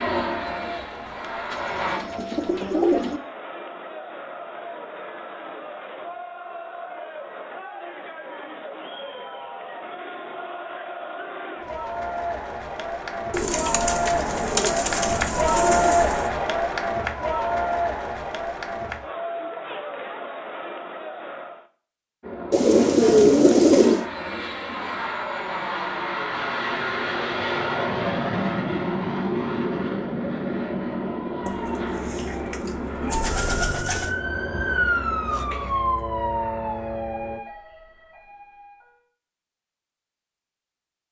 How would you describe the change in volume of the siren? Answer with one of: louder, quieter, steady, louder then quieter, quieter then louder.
louder then quieter.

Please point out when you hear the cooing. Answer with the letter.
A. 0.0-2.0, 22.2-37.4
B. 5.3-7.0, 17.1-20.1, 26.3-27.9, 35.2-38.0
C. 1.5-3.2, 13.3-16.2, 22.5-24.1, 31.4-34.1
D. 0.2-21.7
C.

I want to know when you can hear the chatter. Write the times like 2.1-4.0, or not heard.
0.2-21.7.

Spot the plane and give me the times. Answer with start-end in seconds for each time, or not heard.
0.0-2.0, 22.2-37.4.